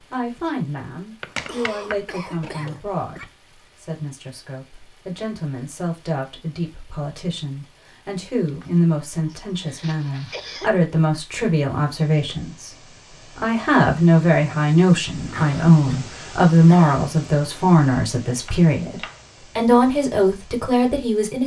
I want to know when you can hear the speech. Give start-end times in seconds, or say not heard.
0.0-21.4.